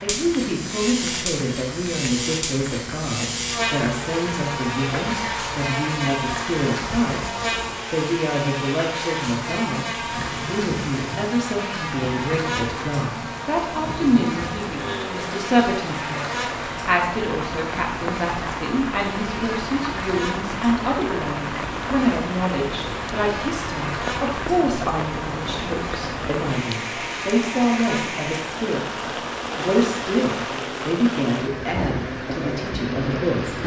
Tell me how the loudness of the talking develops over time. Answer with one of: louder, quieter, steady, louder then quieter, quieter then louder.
steady.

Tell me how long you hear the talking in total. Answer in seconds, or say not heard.
33 s.